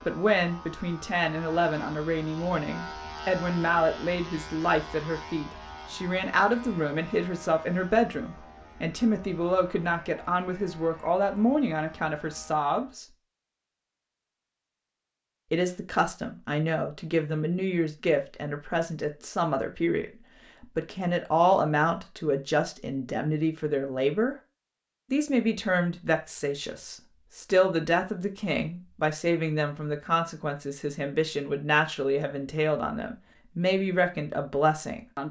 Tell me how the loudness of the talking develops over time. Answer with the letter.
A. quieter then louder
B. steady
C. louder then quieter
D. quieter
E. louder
B.